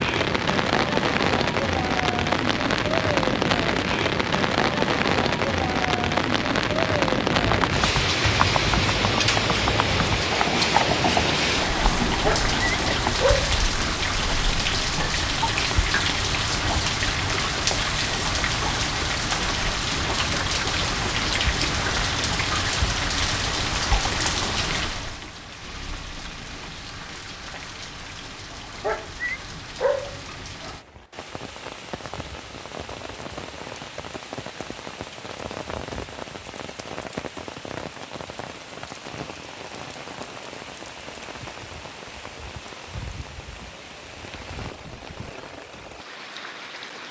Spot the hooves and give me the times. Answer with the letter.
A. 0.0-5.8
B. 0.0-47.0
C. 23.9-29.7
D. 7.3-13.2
D.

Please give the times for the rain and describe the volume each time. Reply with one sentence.
You can hear the rain from 0.0 to 47.0 s, getting quieter.